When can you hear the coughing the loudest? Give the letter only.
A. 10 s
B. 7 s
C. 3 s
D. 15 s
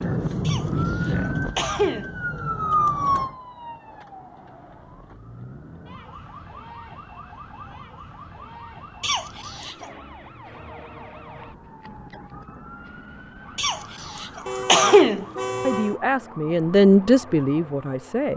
D.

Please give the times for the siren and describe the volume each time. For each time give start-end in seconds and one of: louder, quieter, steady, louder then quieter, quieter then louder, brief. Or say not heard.
0.0-18.3 quieter.